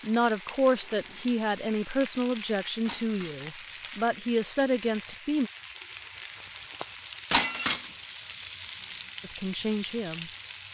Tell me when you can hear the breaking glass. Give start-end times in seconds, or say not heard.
2.9-3.5, 7.3-8.0.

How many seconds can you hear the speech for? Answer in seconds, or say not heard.
7 s.